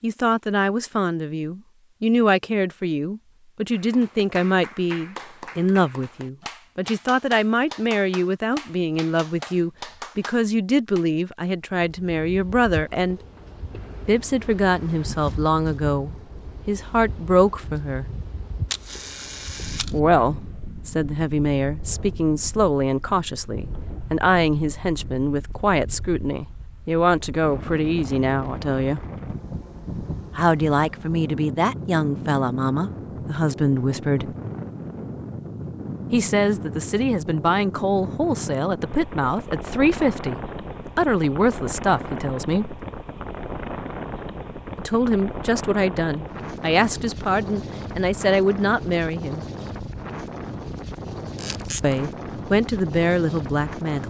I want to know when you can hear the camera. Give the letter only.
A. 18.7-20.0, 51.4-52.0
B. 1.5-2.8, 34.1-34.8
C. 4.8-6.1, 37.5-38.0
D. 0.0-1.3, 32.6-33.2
A.